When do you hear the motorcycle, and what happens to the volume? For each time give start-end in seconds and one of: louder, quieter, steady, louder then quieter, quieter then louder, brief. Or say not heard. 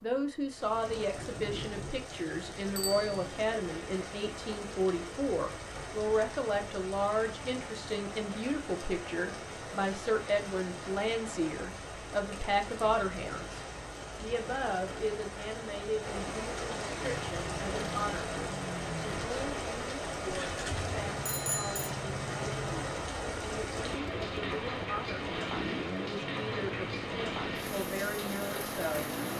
17.0-29.3 steady.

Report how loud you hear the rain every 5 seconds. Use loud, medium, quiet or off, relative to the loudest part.
medium, medium, medium, loud, loud, loud.